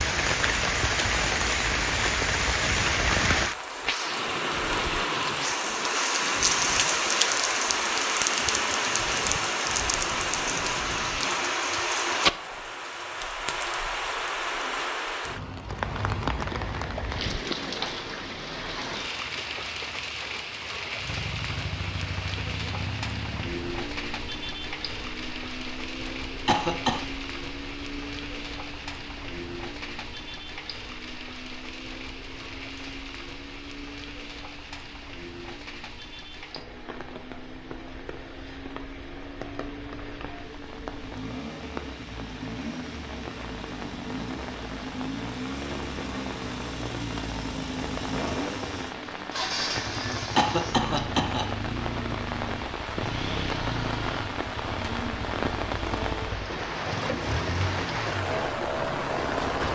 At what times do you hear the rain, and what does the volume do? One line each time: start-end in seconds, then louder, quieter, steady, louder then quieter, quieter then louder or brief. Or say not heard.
0.0-59.6 quieter then louder.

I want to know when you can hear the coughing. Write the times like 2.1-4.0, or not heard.
26.4-27.0, 50.4-51.5.